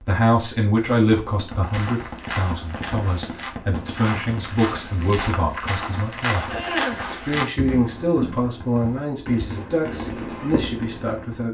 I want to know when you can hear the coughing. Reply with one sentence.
The coughing can be heard from 6.5 to 7.0 s.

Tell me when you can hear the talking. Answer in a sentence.
You can hear the talking from 0.0 to 11.4 s.